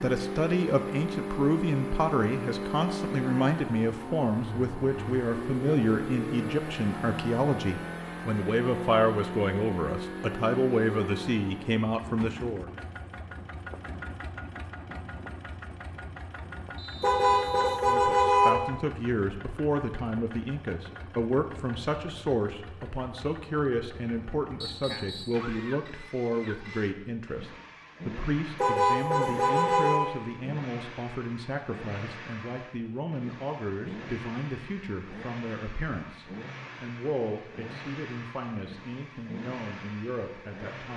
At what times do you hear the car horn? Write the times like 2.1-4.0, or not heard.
17.0-18.5, 28.6-30.1.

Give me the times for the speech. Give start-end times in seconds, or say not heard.
0.0-12.7, 17.9-40.9.